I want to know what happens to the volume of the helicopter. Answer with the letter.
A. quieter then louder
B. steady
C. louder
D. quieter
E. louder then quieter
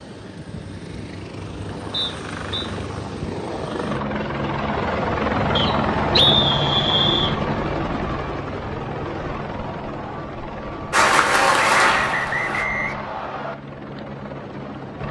E.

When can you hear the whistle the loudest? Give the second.
6 s.